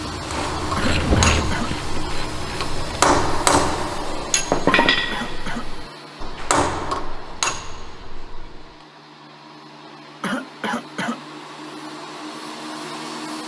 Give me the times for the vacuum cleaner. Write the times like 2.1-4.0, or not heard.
0.0-13.4.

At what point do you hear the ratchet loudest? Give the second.
1 s.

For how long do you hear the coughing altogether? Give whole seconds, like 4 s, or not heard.
3 s.